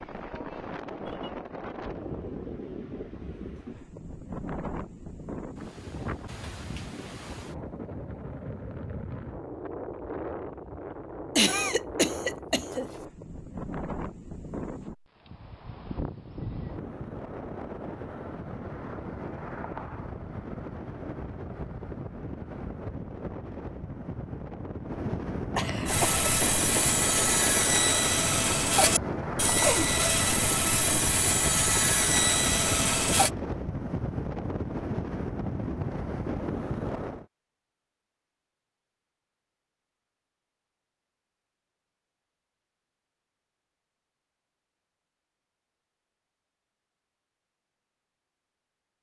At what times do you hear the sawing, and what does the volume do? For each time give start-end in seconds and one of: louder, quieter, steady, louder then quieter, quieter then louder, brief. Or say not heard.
25.9-33.3 steady.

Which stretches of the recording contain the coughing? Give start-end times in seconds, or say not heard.
11.3-12.8, 25.6-26.9.